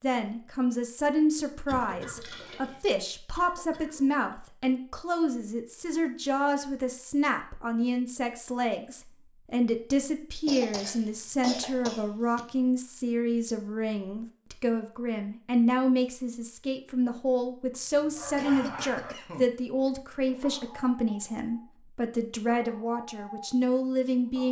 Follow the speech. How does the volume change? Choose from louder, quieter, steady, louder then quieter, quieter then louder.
steady.